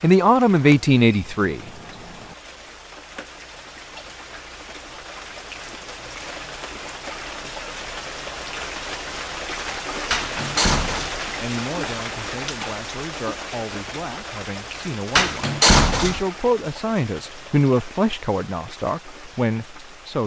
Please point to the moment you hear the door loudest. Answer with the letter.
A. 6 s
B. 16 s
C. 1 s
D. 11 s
B.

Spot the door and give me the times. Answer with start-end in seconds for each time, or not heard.
0.5-2.4, 10.1-11.2, 15.2-16.2.